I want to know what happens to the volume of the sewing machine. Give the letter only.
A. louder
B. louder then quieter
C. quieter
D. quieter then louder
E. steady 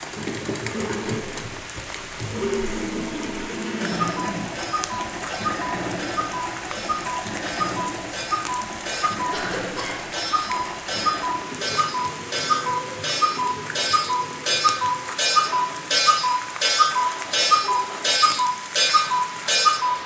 C.